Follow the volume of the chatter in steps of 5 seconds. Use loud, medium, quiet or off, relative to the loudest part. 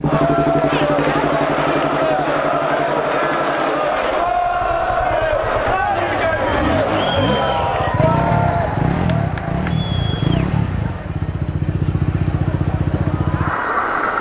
loud, loud, quiet.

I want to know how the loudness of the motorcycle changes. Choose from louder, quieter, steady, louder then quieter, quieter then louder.
quieter then louder.